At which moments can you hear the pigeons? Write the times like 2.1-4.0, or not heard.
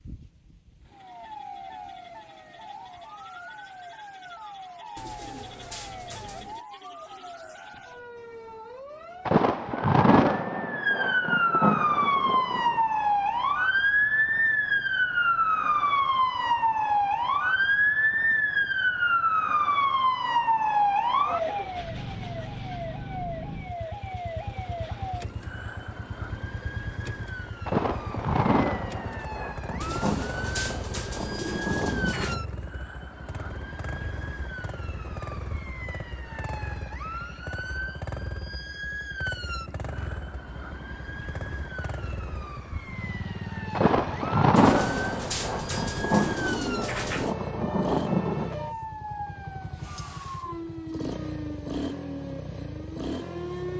5.0-6.7, 29.8-32.4, 44.5-47.4.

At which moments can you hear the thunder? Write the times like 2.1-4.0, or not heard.
9.2-12.8, 27.6-32.4, 43.8-48.5.